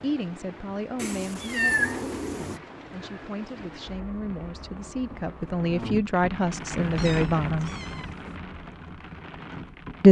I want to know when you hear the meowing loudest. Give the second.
2 s.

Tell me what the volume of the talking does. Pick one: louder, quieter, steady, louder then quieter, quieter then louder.
quieter then louder.